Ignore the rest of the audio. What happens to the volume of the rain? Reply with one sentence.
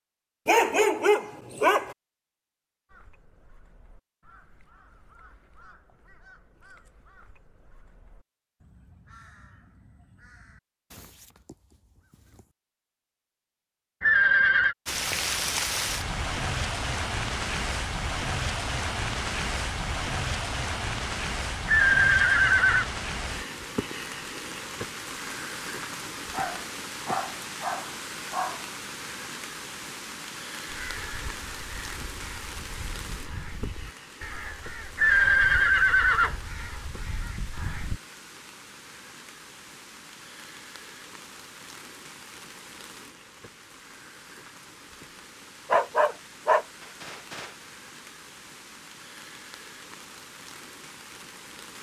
The loudness of the rain goes down.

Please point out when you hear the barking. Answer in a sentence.
The barking can be heard from 0.5 to 1.9 s, from 26.3 to 28.6 s and from 45.7 to 47.5 s.